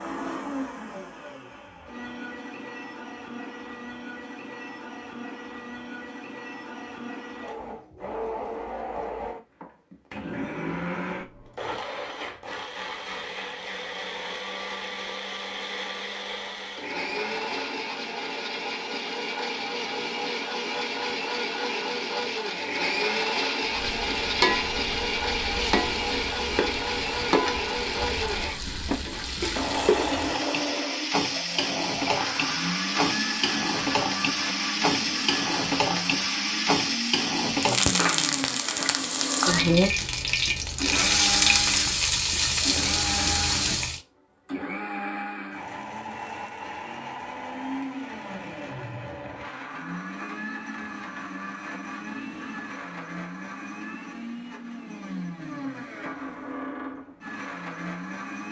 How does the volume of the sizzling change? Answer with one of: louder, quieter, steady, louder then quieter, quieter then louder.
louder.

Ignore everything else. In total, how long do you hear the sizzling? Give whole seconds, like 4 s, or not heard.
20 s.